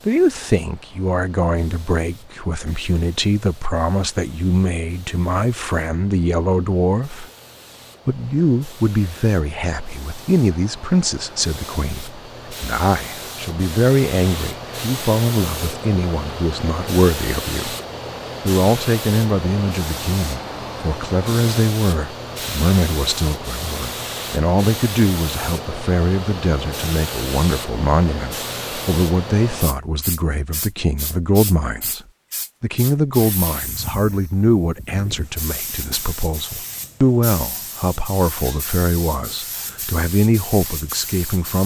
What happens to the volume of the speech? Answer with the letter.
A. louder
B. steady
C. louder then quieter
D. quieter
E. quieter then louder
B.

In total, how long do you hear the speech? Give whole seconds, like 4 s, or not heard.
40 s.